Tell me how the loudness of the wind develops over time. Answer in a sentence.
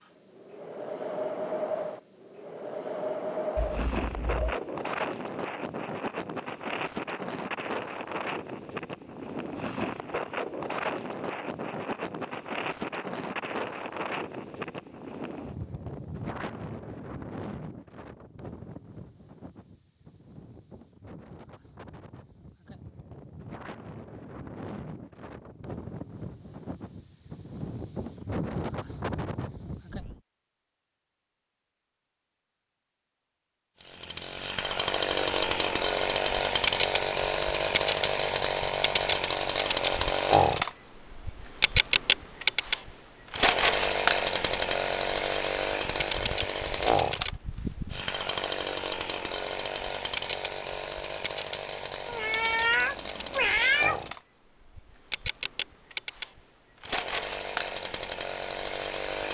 The volume of the wind goes down, then up.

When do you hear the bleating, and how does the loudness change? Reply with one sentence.
You can't hear the bleating here.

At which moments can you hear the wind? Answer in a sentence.
The wind can be heard from 0.1 to 30.2 s.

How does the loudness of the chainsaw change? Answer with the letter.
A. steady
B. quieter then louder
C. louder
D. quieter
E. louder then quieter
D.